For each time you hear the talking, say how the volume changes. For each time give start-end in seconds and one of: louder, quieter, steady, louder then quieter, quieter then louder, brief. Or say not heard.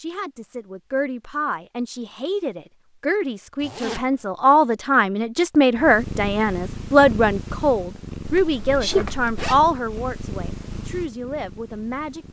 0.0-12.2 louder then quieter.